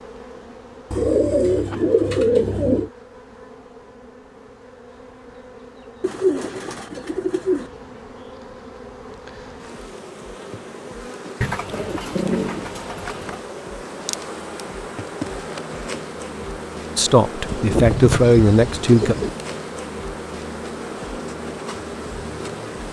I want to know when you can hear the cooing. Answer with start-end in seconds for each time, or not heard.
0.9-2.9, 6.0-7.7, 11.4-13.4, 17.4-19.3.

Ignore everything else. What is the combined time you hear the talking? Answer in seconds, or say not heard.
2 s.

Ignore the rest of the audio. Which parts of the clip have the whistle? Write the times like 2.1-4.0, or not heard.
not heard.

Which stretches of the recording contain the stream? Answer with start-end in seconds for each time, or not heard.
not heard.